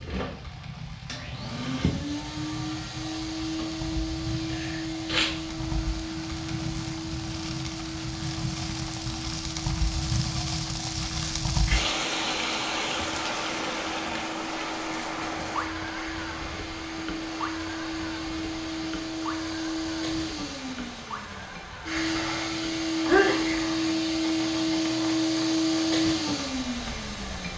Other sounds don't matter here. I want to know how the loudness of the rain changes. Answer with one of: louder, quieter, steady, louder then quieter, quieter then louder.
louder then quieter.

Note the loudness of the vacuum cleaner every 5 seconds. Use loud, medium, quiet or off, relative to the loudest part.
medium, medium, quiet, medium, loud, loud.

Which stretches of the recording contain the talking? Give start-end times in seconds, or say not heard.
not heard.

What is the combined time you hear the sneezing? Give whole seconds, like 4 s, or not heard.
2 s.